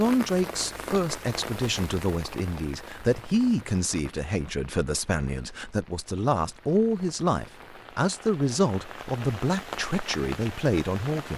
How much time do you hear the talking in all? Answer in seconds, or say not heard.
11 s.